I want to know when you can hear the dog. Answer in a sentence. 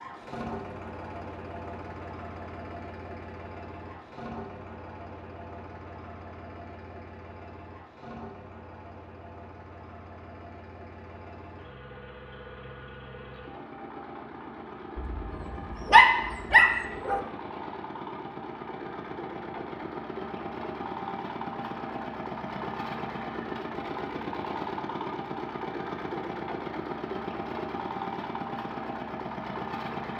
The dog can be heard from 14.9 to 17.2 s.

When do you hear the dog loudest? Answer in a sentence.
The loudest moment of the dog is at 16 seconds.